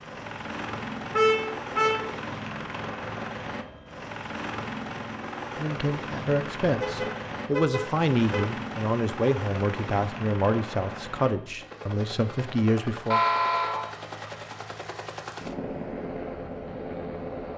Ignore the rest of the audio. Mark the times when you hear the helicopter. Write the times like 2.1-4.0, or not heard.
0.0-17.5.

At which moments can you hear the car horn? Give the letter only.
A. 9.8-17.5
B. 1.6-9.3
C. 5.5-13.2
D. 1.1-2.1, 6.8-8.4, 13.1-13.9
D.